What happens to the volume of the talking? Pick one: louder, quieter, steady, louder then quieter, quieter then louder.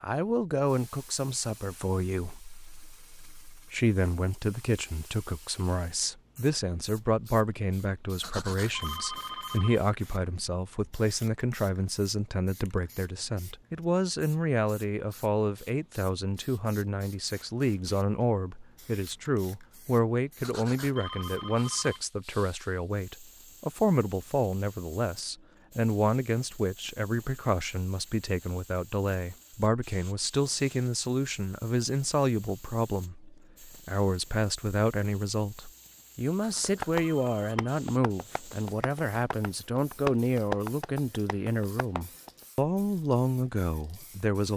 steady.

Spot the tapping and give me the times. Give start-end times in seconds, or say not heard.
36.6-42.3.